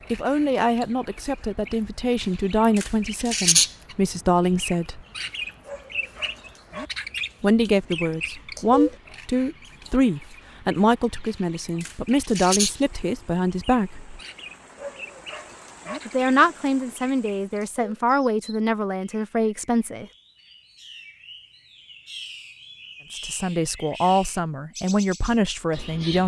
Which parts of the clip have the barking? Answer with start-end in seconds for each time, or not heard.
5.7-6.9, 14.8-16.0.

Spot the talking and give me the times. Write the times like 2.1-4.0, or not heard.
0.1-5.0, 7.4-14.2, 16.1-20.1, 23.1-26.2.